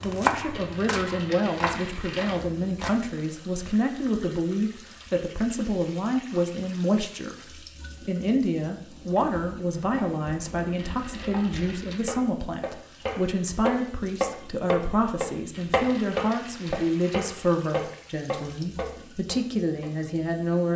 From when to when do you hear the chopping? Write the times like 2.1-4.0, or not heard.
0.0-3.1, 8.8-19.9.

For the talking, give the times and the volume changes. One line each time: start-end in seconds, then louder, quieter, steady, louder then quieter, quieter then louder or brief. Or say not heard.
0.0-20.7 steady.